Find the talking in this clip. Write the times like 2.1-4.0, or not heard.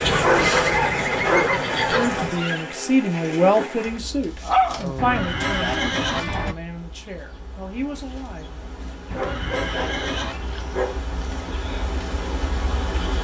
1.9-8.7.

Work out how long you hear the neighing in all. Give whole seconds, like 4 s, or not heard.
5 s.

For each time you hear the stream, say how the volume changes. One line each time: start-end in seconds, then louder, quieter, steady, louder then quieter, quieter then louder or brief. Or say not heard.
not heard.